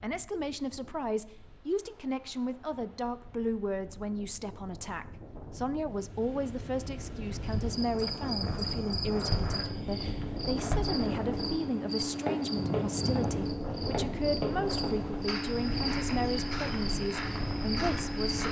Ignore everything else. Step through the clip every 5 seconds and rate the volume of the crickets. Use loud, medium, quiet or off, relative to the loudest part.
off, loud, loud, loud.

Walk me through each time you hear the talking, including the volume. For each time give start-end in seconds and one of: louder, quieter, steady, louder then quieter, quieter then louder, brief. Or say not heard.
0.0-18.4 steady.